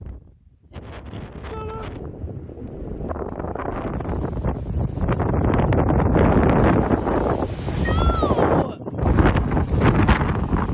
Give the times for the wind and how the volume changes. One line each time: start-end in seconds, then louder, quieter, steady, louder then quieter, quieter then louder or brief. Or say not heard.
0.0-10.6 louder.